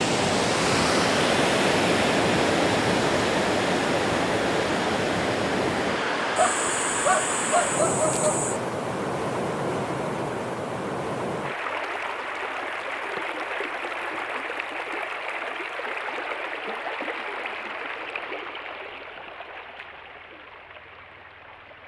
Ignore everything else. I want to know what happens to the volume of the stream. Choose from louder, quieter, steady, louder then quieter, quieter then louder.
quieter.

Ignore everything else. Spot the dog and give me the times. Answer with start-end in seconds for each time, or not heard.
6.3-8.6.